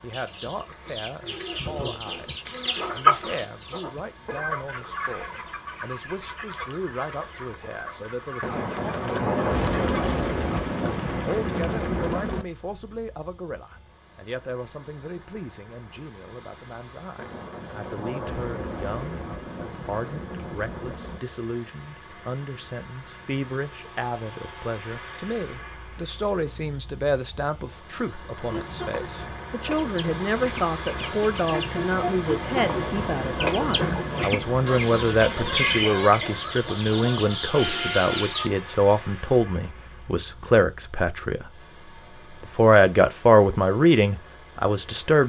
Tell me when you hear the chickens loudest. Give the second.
3 s.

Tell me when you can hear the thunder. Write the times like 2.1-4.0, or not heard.
8.4-12.4, 17.1-21.2, 32.0-35.8.